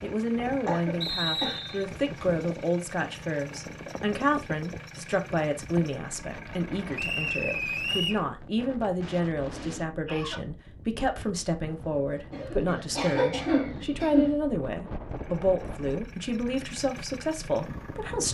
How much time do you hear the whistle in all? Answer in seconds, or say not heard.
3 s.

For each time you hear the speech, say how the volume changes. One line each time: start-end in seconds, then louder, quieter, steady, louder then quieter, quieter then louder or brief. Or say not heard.
0.0-18.2 steady.